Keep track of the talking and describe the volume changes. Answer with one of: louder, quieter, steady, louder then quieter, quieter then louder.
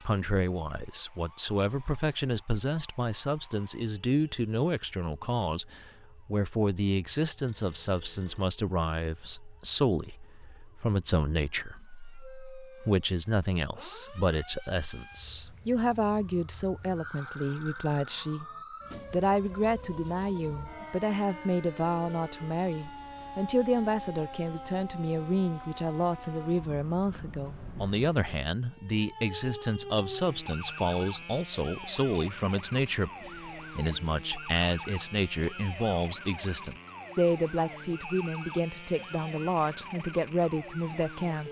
steady.